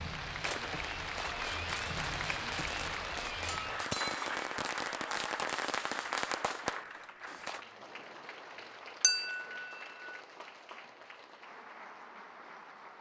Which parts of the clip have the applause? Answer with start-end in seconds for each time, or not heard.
0.0-12.9.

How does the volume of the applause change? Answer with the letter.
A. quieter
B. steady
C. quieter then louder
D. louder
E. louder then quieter
A.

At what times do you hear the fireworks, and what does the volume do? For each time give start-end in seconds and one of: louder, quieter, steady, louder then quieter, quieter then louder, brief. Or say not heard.
0.2-7.6 louder.